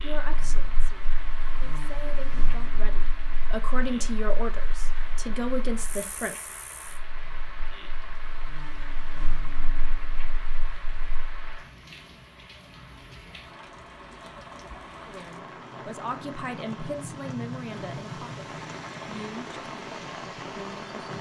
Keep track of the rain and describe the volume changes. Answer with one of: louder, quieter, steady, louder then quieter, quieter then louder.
louder.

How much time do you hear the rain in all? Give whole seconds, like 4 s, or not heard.
21 s.